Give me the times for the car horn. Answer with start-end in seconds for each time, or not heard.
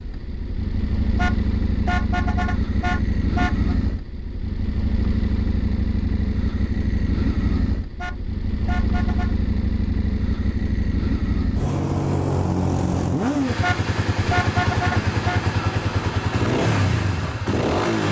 1.1-3.8, 8.0-9.3, 13.6-15.4.